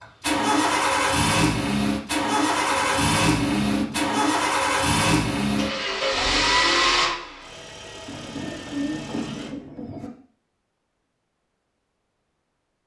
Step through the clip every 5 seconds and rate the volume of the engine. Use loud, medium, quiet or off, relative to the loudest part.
loud, loud, off.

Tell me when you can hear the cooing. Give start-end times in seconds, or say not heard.
2.7-4.2, 8.1-10.1.